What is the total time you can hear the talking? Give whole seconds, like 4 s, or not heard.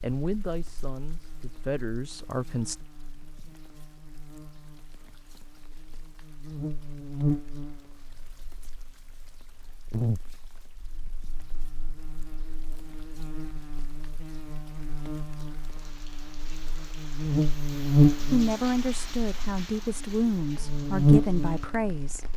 7 s.